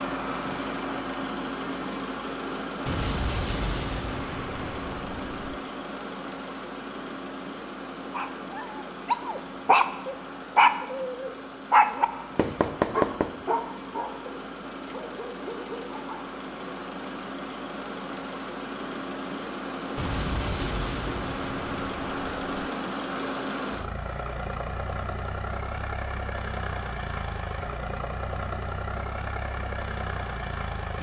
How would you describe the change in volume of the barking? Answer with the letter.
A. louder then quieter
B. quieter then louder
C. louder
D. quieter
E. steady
D.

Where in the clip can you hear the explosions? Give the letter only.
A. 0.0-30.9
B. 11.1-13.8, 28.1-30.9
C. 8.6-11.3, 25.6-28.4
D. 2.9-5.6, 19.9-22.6
D.